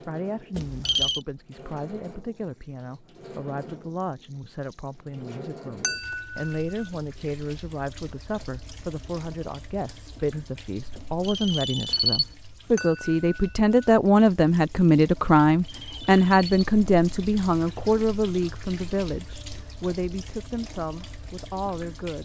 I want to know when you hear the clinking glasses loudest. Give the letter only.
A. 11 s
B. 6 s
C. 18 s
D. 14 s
B.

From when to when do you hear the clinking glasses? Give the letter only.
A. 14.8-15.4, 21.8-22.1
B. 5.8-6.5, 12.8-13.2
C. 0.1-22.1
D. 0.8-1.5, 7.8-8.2
B.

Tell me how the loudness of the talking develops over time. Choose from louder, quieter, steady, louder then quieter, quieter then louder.
louder then quieter.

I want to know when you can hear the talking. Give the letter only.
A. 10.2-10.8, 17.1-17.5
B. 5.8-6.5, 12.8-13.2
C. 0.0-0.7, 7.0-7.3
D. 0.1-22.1
D.